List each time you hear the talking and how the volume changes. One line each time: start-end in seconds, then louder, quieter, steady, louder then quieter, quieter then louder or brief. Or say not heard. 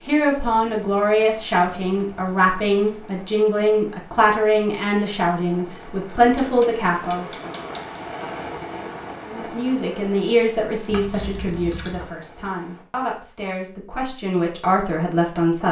0.1-7.2 steady
9.2-15.6 quieter then louder.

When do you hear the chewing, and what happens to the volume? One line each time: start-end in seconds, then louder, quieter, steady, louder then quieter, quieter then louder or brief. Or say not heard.
not heard.